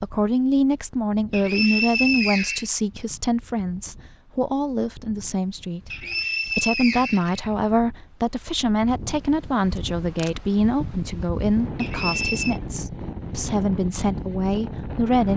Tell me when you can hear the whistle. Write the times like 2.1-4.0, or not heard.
1.3-2.6, 5.9-7.4, 11.8-12.6.